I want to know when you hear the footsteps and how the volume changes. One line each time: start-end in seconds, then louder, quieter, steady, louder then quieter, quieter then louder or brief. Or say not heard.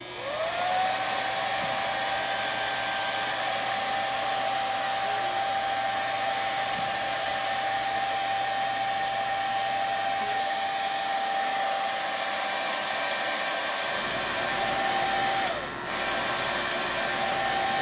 not heard.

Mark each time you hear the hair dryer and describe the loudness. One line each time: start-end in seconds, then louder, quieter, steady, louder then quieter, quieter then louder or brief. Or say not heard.
0.0-17.7 steady.